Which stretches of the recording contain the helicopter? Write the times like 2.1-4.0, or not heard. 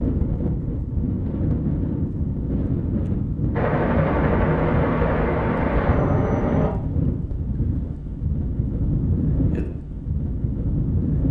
3.5-6.7.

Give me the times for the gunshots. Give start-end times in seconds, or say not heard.
not heard.